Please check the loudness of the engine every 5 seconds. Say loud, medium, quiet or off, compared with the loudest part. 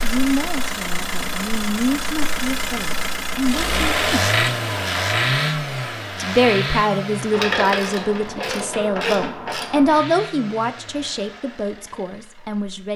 loud, loud, quiet.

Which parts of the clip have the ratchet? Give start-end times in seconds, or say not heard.
7.3-10.0.